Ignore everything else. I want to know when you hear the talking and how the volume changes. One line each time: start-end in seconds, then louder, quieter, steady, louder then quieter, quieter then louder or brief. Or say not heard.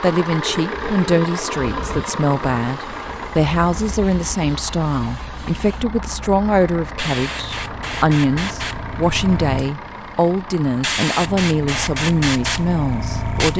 0.0-13.5 steady.